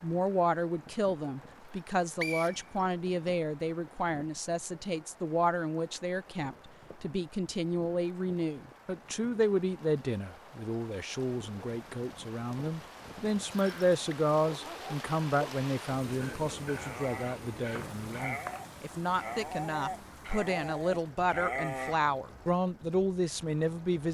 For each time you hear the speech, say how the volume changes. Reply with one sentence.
You can hear the speech from 0.0 to 24.0 s, at a steady volume.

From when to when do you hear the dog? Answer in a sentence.
The dog can be heard from 14.4 to 21.9 s.